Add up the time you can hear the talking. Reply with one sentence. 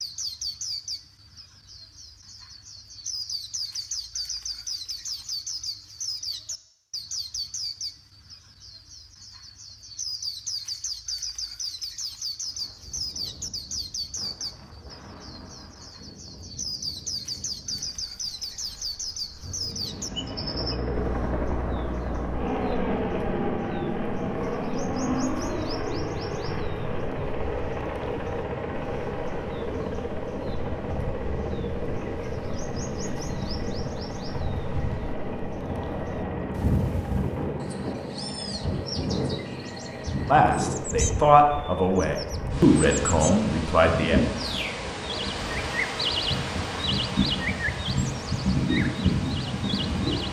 You can hear the talking for 4 seconds altogether.